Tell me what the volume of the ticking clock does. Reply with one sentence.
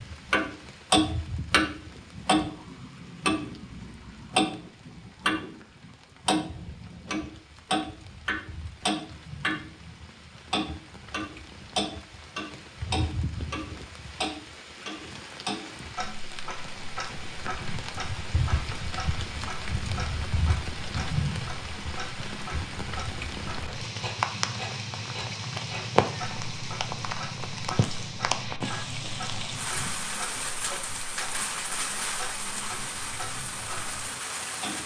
The volume of the ticking clock goes down.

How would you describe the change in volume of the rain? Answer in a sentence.
The volume of the rain goes up.